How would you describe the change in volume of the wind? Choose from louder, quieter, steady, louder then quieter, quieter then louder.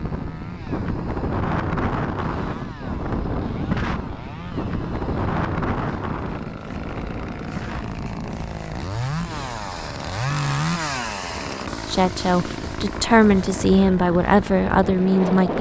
quieter then louder.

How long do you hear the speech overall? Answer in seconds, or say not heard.
4 s.